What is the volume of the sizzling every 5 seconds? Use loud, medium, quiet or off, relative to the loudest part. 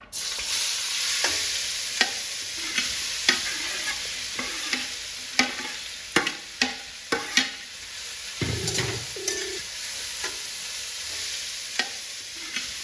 loud, loud, medium.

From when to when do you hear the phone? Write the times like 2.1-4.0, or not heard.
8.3-9.6.